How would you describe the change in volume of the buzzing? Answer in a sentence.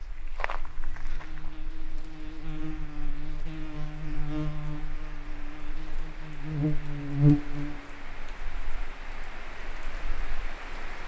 The loudness of the buzzing goes up, then down.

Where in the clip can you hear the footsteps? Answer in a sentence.
You can hear the footsteps from 0.0 to 1.6 s.